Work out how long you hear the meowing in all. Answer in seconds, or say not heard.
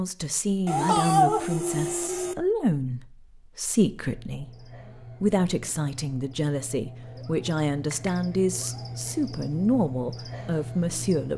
4 s.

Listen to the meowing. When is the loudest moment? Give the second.
1 s.